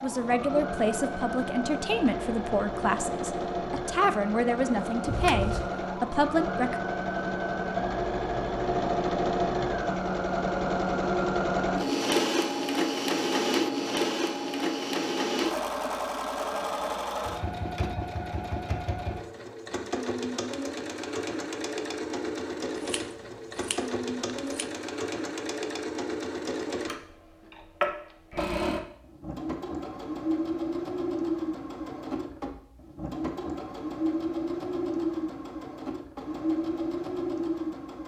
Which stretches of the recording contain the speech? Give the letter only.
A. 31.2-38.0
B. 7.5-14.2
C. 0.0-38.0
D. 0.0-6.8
D.